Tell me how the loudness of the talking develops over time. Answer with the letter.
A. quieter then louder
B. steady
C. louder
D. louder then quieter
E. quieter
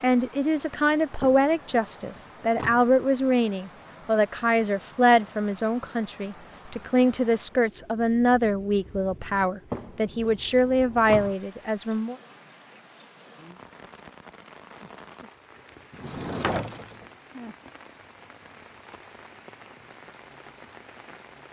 B.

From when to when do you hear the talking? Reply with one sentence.
The talking can be heard from 0.0 to 12.2 s.